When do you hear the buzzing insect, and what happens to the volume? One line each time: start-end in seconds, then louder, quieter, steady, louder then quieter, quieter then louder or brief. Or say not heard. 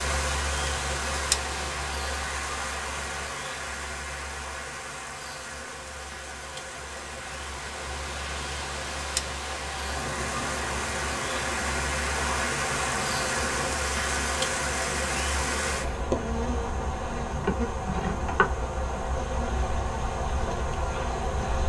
0.0-21.6 quieter then louder.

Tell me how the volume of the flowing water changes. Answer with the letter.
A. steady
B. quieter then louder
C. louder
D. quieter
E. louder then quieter
B.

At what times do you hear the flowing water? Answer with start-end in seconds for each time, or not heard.
0.0-16.1.